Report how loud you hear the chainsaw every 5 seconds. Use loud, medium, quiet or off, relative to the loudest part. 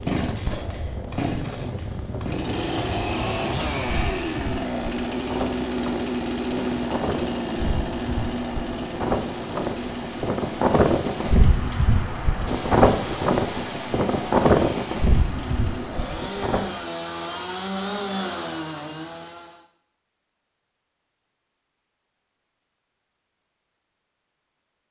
loud, loud, medium, loud, off.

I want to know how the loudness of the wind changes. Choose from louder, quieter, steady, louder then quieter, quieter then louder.
louder.